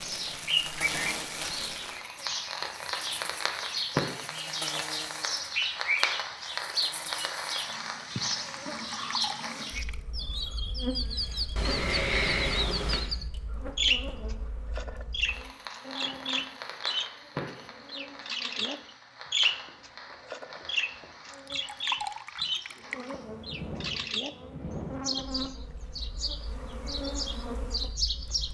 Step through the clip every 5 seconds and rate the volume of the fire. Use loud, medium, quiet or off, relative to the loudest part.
loud, loud, quiet, medium, medium, quiet.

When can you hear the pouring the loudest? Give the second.
22 s.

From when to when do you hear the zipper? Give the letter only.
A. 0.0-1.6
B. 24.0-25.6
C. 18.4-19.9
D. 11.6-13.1
D.